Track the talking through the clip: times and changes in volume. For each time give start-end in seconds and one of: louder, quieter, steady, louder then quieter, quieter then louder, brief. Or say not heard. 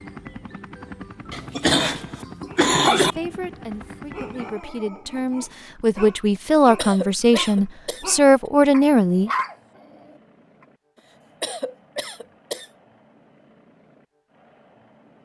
3.0-9.3 louder.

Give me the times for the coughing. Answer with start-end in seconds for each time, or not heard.
1.3-3.1, 6.8-8.1, 11.4-12.7.